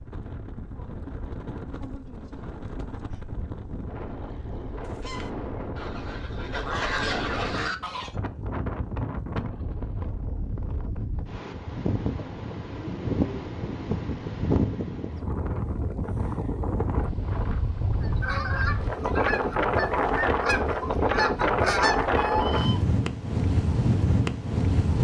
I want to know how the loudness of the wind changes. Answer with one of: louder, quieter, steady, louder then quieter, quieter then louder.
louder.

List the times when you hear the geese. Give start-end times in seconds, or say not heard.
4.8-8.1, 18.0-22.8.